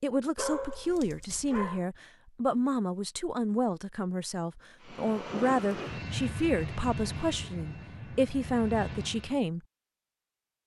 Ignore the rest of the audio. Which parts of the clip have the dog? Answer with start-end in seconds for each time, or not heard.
0.3-1.9.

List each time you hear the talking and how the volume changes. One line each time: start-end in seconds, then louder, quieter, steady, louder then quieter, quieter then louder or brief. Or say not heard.
0.0-9.6 steady.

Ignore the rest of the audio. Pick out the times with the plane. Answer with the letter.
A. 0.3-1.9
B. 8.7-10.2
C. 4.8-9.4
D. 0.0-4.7
C.